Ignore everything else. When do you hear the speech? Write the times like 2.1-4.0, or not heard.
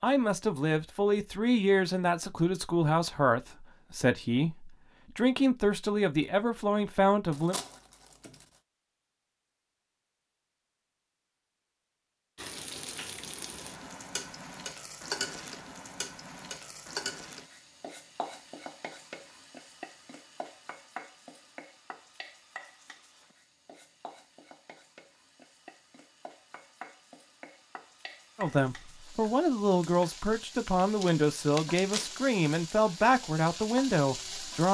0.0-7.5, 28.4-34.6.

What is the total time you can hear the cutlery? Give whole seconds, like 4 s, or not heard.
not heard.